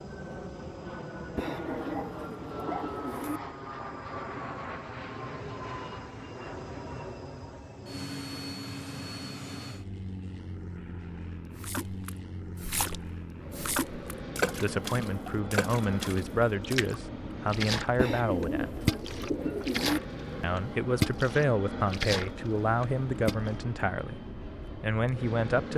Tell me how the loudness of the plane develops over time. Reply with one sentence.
The loudness of the plane stays about the same.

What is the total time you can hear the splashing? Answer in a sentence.
The splashing can be heard for 12 seconds in total.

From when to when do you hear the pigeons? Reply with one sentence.
You can hear the pigeons from 1.4 to 3.4 s and from 17.9 to 20.0 s.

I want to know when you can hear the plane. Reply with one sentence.
You can hear the plane from 0.0 to 25.7 s.